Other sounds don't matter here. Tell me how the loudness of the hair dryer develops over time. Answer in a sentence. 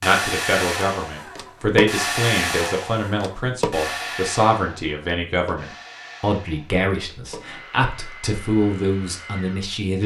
The volume of the hair dryer goes down.